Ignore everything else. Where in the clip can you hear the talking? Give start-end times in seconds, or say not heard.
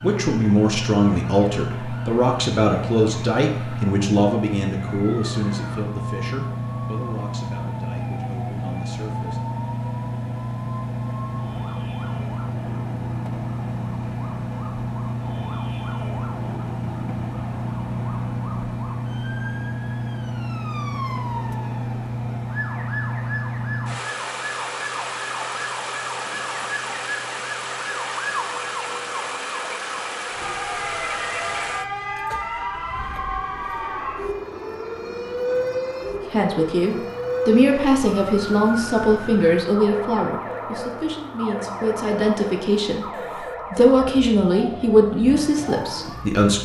0.0-9.4, 36.3-46.5.